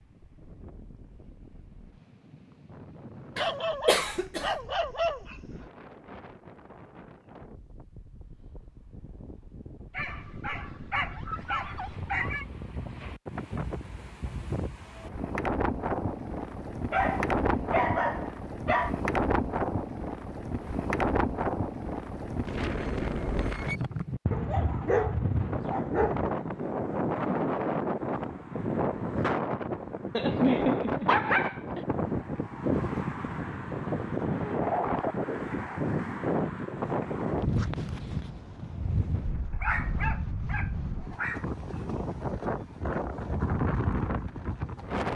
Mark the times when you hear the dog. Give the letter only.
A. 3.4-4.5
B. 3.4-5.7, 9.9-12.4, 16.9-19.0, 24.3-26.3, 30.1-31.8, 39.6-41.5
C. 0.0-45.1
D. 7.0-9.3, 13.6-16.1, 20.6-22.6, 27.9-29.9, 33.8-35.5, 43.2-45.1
B.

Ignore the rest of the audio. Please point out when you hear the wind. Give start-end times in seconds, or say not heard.
0.0-45.1.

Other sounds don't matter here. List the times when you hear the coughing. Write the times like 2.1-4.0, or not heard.
3.4-4.5.